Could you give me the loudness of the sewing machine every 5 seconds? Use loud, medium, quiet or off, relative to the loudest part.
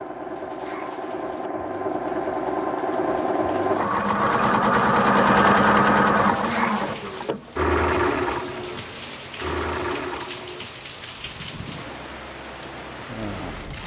loud, loud, quiet.